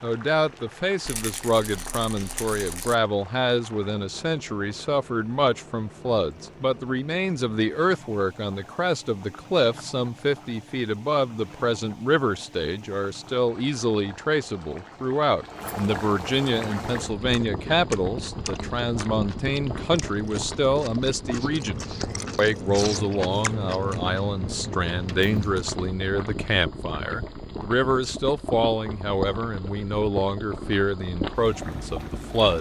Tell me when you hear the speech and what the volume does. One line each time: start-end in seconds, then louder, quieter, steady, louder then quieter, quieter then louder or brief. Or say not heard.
0.0-32.5 steady.